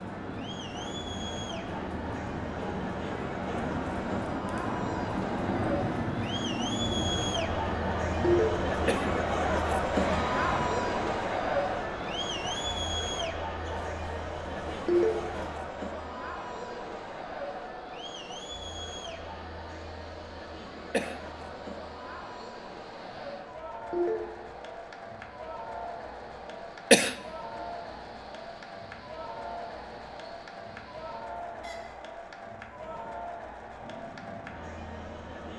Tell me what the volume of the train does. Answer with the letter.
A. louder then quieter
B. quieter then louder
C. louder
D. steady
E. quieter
E.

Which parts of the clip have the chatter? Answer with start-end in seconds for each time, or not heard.
0.0-35.5.